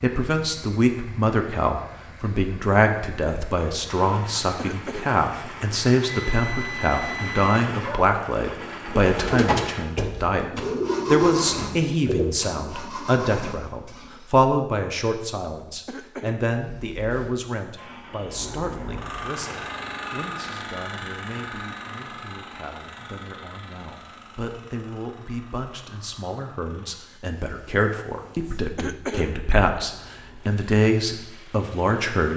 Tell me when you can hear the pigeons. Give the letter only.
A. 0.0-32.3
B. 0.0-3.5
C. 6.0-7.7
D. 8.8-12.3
D.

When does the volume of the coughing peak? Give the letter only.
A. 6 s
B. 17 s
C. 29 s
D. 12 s
C.